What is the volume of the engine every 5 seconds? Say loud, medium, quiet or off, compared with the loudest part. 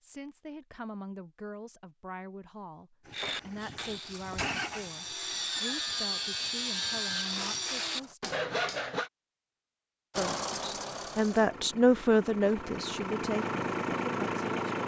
medium, quiet, loud.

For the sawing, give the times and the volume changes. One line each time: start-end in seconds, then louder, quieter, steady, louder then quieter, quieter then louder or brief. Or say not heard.
3.1-9.1 louder.